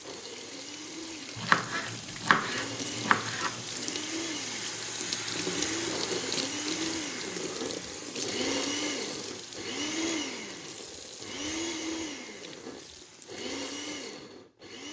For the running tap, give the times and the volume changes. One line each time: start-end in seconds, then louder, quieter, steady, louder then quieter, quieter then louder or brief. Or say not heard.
0.0-14.8 louder then quieter.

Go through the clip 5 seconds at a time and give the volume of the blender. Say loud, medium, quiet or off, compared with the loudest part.
medium, loud, loud.